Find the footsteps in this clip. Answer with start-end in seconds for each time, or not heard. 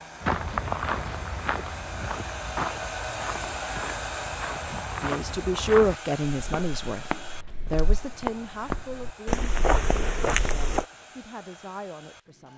0.2-10.8.